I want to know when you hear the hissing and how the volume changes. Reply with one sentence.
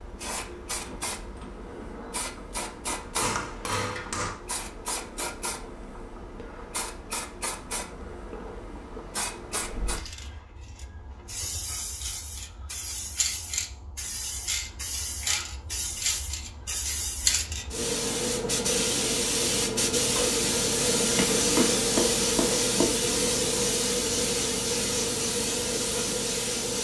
The hissing can be heard from 0.0 to 26.8 s, getting louder.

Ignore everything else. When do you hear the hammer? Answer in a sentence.
You can hear the hammer from 2.9 to 4.4 s and from 21.0 to 22.9 s.